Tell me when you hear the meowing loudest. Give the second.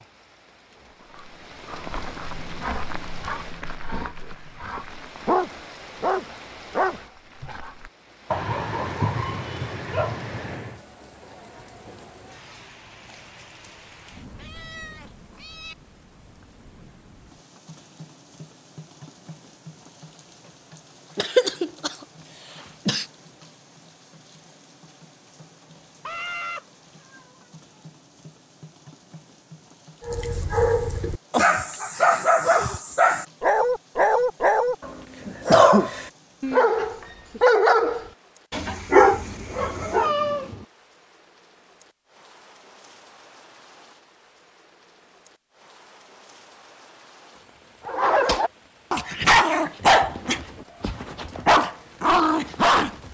40 s.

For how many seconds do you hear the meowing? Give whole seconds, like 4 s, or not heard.
5 s.